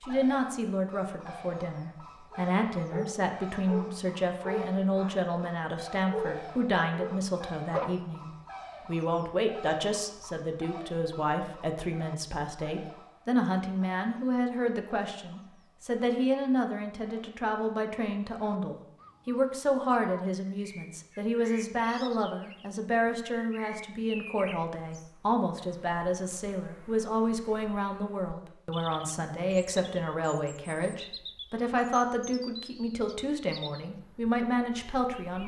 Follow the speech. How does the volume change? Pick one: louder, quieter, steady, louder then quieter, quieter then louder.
steady.